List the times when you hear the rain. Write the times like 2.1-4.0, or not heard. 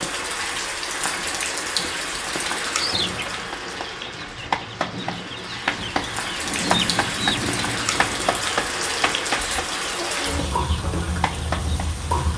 0.0-12.3.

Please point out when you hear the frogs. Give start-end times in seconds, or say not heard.
not heard.